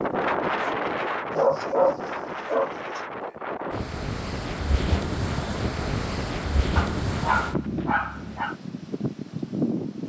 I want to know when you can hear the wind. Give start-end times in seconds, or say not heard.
0.0-10.0.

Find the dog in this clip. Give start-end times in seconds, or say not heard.
1.3-3.0, 6.8-8.6.